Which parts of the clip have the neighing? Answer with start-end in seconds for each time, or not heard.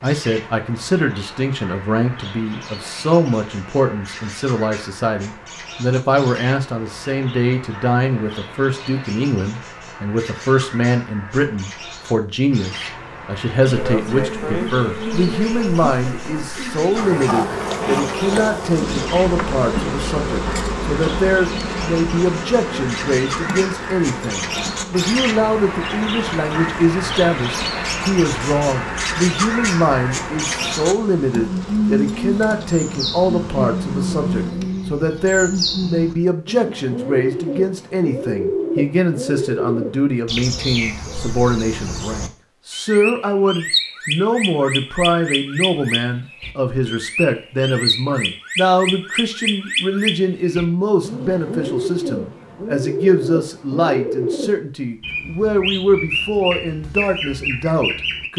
not heard.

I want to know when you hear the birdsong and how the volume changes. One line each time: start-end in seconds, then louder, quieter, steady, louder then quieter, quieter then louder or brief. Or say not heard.
0.0-58.3 louder.